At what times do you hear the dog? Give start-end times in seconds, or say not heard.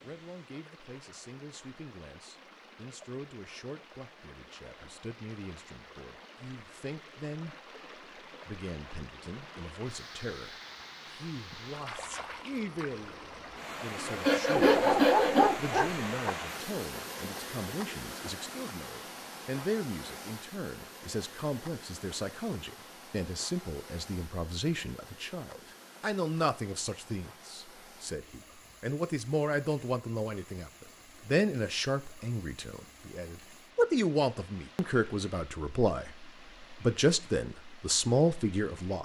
14.6-16.3.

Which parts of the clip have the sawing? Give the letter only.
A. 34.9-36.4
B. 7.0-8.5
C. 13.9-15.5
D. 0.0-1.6
C.